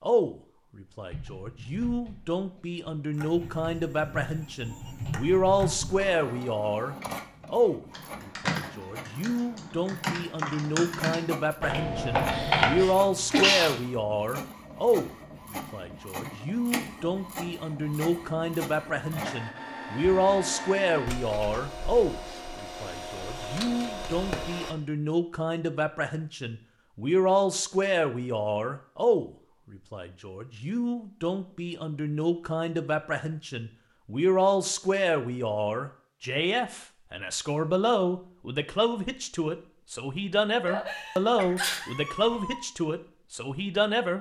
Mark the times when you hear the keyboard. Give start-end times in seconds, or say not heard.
1.1-12.8.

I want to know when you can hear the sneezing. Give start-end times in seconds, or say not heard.
12.3-13.8, 40.6-42.6.